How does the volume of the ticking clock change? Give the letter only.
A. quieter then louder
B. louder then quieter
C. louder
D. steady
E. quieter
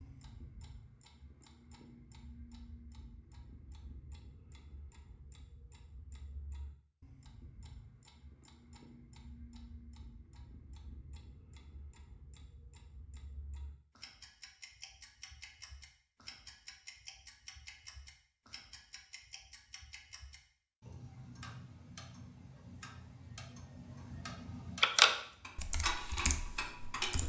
C.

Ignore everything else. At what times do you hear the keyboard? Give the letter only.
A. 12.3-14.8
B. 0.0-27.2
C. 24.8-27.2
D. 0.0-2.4
C.